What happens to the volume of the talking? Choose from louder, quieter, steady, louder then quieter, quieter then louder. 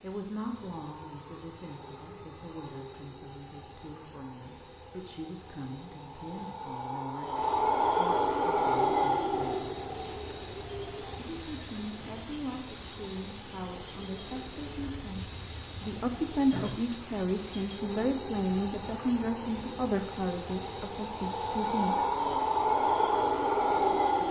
louder.